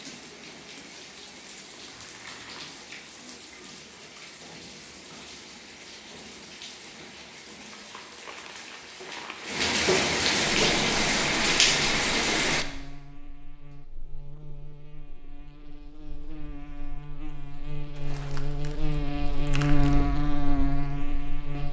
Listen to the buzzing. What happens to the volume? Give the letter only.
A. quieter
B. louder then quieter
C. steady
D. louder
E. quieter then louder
D.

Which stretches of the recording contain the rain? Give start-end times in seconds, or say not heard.
0.0-12.7.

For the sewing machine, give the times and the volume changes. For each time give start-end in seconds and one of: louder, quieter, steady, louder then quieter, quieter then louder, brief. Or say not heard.
not heard.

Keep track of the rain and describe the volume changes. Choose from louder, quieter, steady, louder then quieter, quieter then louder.
louder.